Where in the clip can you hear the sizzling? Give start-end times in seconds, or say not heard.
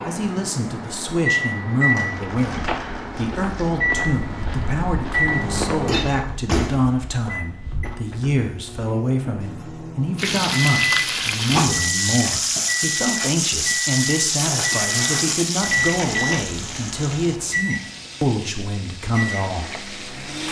10.2-20.4.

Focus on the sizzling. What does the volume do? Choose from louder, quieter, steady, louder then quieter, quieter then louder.
quieter.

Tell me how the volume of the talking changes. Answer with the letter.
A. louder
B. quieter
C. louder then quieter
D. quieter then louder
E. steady
E.